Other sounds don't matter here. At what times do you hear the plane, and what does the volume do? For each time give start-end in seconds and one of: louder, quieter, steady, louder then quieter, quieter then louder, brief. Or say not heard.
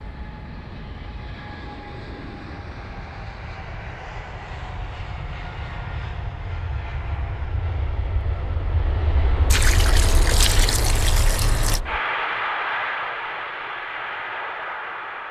0.0-15.2 louder.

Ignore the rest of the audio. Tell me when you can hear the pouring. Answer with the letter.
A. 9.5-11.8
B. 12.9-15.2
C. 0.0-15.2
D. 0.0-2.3
A.